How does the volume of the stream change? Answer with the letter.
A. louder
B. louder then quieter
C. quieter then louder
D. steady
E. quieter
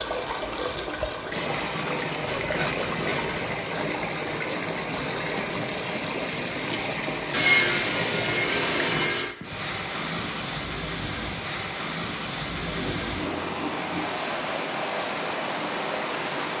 D.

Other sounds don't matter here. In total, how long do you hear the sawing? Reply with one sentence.
The sawing can be heard for 5 seconds in total.